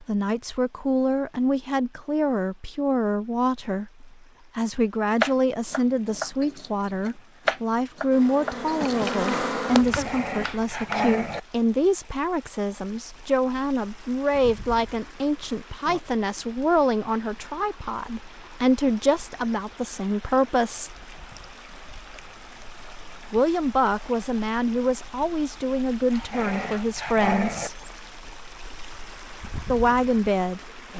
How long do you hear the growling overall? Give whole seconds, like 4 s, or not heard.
3 s.